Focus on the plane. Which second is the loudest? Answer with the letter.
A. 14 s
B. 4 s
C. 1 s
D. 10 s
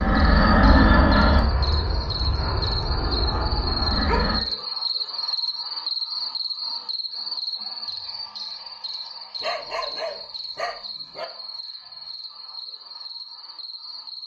C.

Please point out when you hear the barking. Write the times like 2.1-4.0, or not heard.
4.0-4.7, 9.4-11.2.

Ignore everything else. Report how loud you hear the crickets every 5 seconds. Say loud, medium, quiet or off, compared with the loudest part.
loud, loud, medium.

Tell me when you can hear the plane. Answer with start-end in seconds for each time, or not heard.
0.0-4.4.